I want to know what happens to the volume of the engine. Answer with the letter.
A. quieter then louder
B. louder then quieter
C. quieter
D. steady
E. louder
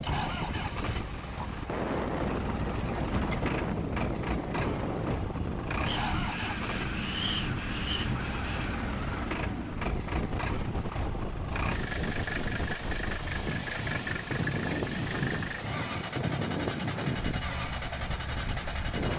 D.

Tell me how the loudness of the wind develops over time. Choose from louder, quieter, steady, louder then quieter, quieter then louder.
steady.